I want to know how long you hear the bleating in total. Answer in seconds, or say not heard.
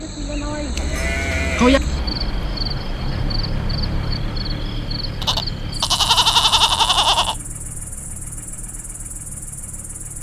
3 s.